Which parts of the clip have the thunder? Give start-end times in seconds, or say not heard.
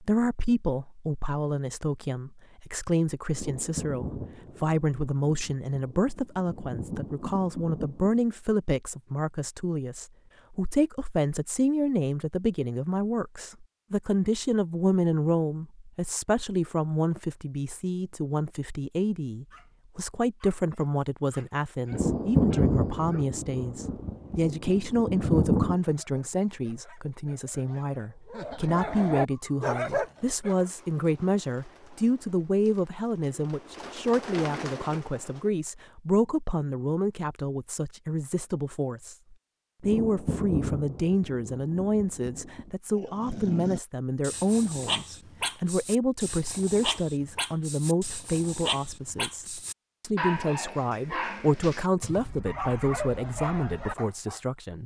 3.3-8.2, 21.9-25.8, 39.8-42.7.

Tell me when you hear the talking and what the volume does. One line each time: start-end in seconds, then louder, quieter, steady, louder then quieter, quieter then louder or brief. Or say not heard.
0.0-54.8 steady.